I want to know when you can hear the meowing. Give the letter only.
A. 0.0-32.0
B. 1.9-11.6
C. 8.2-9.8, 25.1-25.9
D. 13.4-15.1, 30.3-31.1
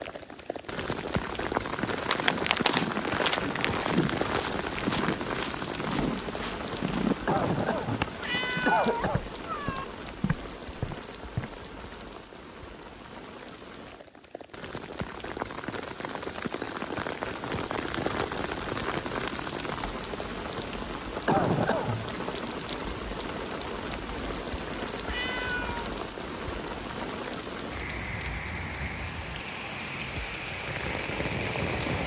C.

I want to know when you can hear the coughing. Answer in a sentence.
You can hear the coughing from 7.2 to 9.2 s and from 21.2 to 22.1 s.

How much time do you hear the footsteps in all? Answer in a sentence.
You can hear the footsteps for 10 seconds altogether.